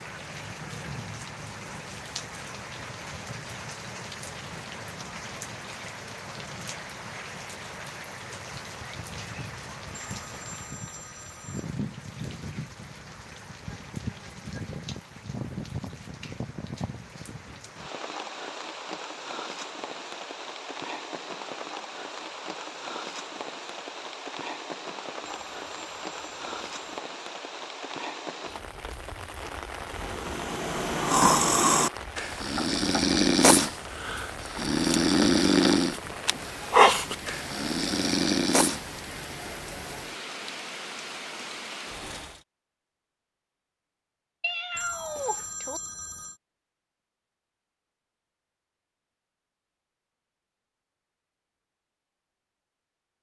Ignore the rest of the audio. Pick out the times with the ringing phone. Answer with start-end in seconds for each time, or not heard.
10.1-11.7, 25.2-27.0, 44.8-46.4.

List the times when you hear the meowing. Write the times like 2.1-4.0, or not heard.
44.4-45.8.